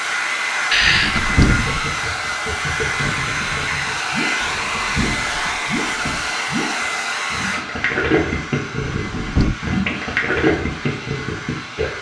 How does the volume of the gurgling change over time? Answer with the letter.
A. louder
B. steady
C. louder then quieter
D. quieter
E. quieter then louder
A.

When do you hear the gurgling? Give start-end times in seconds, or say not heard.
1.4-11.9.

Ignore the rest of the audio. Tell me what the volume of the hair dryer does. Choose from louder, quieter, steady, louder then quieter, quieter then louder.
quieter.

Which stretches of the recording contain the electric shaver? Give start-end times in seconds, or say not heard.
not heard.